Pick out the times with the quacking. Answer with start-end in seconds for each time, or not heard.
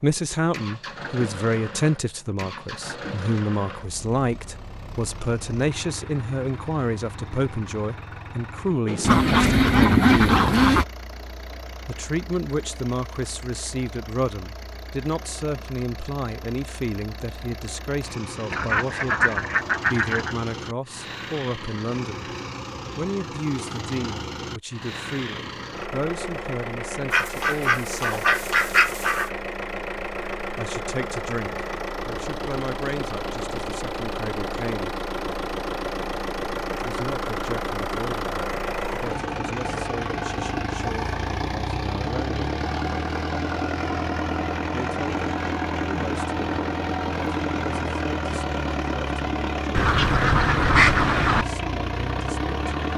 9.0-10.8, 18.5-20.4, 27.1-29.3, 49.7-51.5.